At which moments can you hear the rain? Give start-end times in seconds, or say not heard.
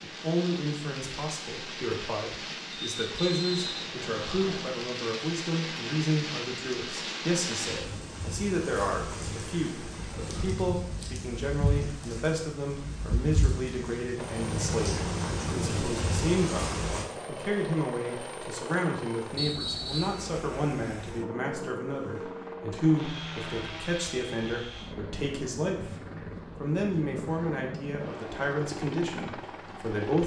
0.0-17.1.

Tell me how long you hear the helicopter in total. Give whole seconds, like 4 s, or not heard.
16 s.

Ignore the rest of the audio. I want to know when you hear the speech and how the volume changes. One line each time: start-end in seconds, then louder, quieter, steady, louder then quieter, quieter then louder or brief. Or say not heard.
0.0-30.2 steady.